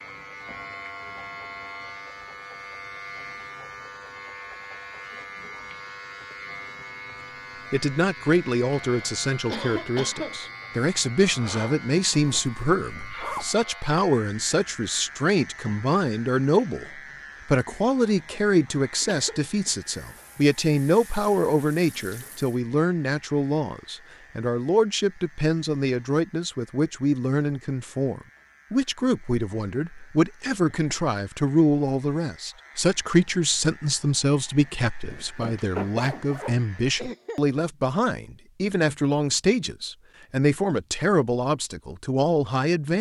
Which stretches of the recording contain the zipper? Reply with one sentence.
You can hear the zipper from 12.1 to 13.5 s and from 35.0 to 36.5 s.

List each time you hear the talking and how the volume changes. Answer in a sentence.
The talking can be heard from 7.7 to 42.9 s, at a steady volume.